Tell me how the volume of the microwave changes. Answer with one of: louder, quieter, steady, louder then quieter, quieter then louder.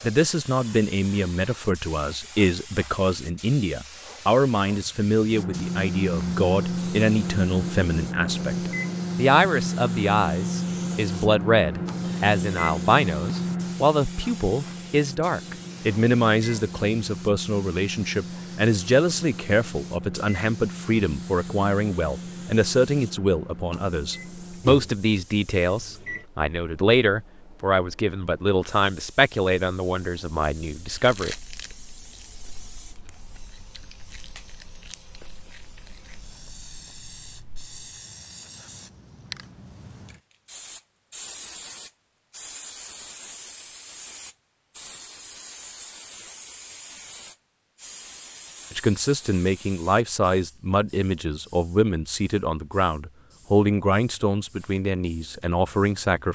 quieter.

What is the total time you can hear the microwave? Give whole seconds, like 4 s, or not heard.
21 s.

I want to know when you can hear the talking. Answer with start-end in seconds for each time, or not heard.
0.0-31.4, 48.7-56.3.